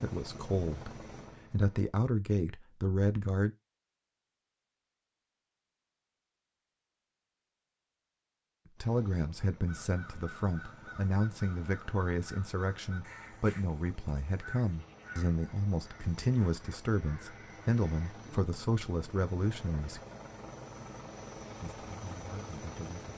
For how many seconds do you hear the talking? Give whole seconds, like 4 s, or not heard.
16 s.